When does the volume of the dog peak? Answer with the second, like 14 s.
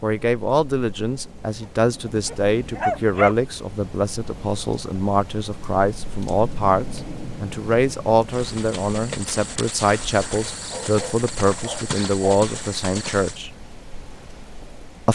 3 s.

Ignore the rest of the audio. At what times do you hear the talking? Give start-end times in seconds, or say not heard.
0.0-13.5.